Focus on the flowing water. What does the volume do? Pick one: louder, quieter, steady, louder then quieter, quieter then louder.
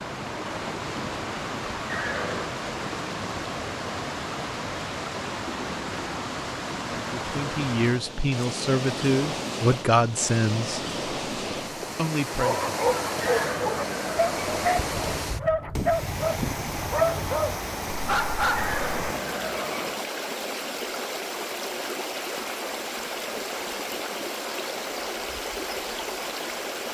steady.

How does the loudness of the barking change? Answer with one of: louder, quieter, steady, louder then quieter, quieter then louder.
steady.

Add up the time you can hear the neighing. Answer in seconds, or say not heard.
4 s.